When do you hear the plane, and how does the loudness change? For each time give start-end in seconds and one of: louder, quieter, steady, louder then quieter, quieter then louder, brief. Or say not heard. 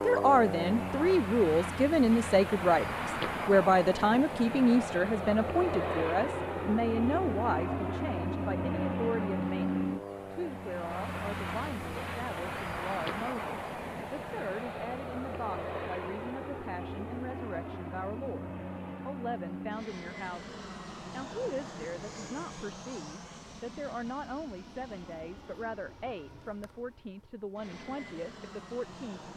0.0-29.3 quieter.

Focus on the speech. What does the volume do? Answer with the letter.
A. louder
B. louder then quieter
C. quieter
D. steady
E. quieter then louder
C.